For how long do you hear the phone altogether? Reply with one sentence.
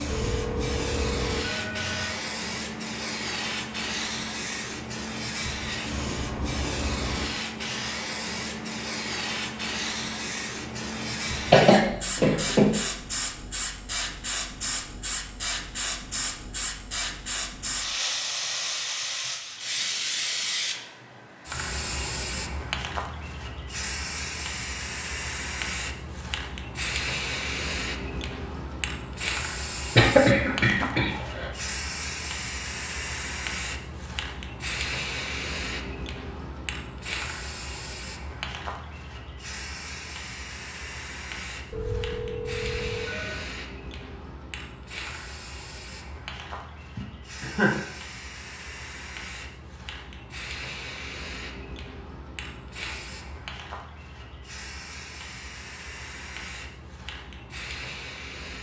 The phone can be heard for 4 seconds in total.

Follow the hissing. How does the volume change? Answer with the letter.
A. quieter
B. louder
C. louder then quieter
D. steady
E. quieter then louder
A.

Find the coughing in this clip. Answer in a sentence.
You can hear the coughing from 11.5 to 12.7 s, from 29.9 to 31.5 s and from 47.0 to 47.8 s.